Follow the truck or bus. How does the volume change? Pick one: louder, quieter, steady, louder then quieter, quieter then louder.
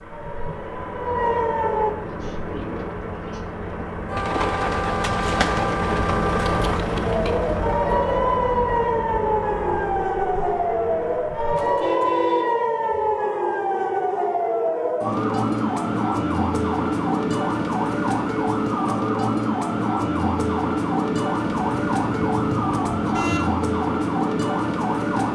louder then quieter.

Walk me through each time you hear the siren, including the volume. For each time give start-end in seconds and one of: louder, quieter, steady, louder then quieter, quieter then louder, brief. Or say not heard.
0.0-1.9 brief
7.0-25.3 steady.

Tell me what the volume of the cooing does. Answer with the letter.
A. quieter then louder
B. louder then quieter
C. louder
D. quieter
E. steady
B.